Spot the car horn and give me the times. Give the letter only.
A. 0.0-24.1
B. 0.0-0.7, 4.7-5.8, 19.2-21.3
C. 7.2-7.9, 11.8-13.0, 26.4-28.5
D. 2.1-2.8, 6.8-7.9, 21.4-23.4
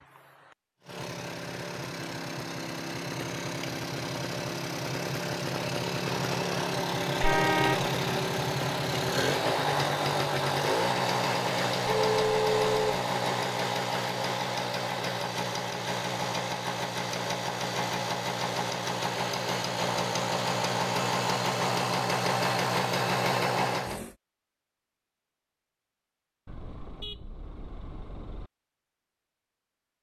C.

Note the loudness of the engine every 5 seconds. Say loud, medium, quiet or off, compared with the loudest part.
medium, loud, loud, loud, loud, off.